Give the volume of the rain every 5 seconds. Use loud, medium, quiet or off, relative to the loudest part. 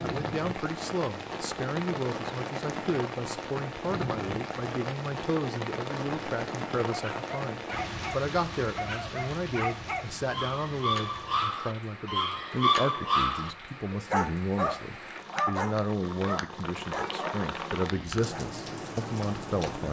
loud, loud, medium, loud.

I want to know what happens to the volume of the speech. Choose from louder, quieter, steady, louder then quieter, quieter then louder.
steady.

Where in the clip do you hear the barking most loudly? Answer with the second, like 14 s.
13 s.